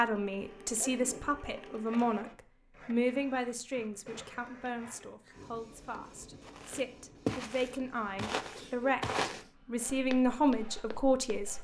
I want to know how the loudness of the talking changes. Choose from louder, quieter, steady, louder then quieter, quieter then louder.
quieter then louder.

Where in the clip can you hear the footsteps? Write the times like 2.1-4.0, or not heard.
6.4-11.5.